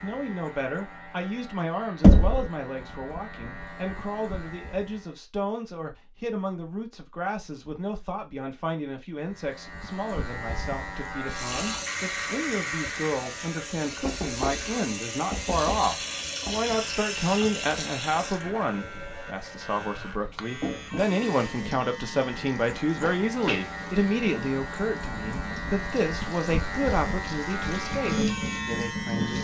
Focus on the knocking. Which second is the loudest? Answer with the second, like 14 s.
2 s.